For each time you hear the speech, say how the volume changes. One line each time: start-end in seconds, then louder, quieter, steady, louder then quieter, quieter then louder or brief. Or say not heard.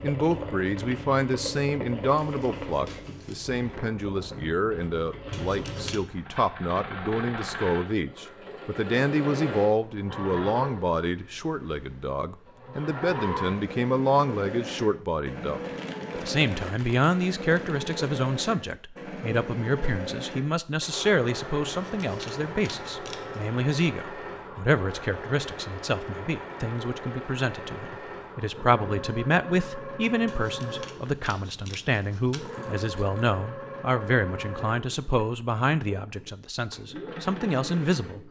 0.0-38.2 steady.